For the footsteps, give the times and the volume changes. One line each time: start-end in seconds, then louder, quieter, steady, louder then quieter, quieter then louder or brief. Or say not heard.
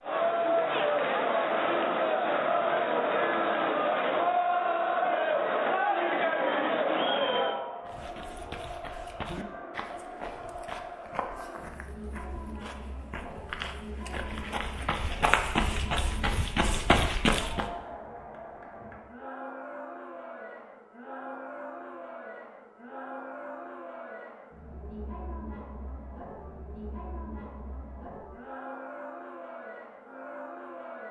7.8-17.7 louder.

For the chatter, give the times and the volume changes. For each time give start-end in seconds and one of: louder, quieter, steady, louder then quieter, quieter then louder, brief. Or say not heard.
0.0-31.0 quieter.